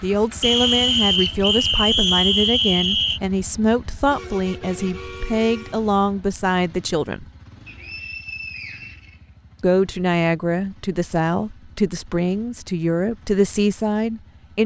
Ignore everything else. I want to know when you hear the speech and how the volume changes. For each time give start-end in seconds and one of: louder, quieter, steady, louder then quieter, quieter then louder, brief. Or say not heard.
0.0-7.2 steady
9.6-14.6 steady.